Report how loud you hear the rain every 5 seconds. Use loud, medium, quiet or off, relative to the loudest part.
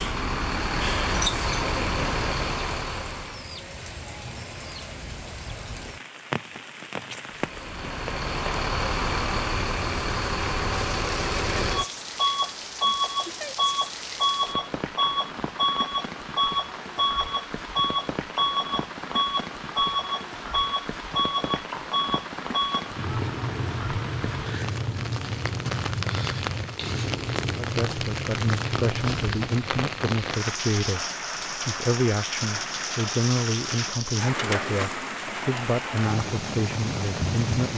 medium, medium, medium, medium, medium, loud, loud, loud.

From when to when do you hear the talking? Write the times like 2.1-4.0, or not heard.
27.6-37.7.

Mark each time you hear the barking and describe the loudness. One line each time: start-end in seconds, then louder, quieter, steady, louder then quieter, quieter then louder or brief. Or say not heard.
not heard.